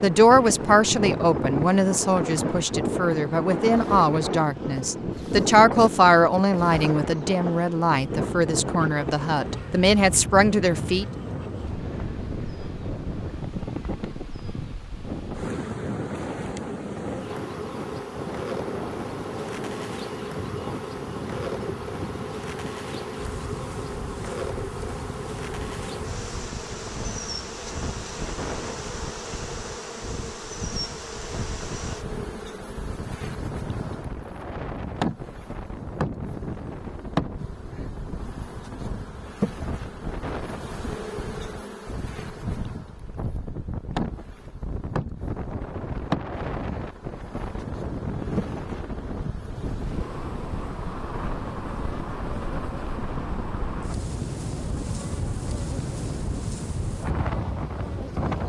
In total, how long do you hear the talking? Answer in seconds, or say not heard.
11 s.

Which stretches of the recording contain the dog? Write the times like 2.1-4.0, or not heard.
not heard.